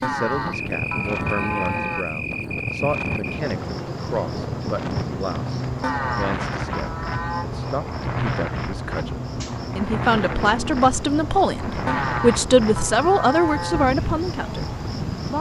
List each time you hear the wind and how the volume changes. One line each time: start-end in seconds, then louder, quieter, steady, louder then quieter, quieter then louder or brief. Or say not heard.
0.0-15.3 steady.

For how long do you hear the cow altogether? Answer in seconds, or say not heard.
6 s.